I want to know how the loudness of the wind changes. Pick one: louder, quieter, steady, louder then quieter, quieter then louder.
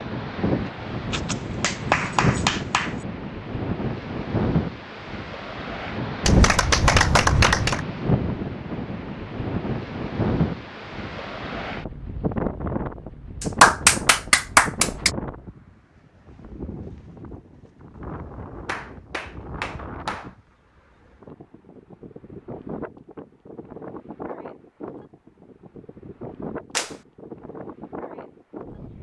quieter.